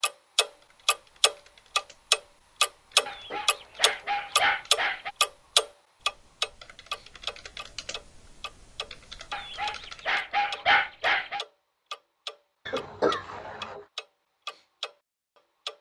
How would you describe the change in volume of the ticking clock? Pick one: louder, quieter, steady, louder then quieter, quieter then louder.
quieter.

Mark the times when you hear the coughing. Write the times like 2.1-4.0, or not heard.
2.9-4.7, 12.7-13.8.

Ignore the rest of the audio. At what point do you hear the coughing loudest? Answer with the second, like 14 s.
13 s.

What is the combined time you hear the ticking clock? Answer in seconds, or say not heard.
16 s.